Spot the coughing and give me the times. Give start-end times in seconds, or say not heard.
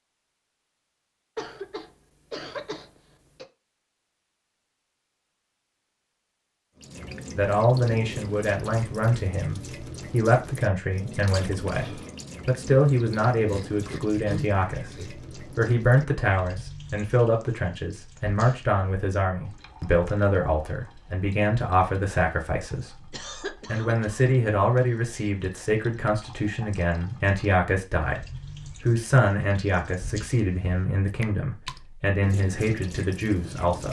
1.4-3.5, 13.4-15.1, 23.1-25.3.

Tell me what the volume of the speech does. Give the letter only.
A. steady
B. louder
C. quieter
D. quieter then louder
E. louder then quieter
A.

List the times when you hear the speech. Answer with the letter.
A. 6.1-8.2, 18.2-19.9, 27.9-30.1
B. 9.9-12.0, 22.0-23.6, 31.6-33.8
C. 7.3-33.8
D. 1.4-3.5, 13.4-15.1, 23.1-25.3
C.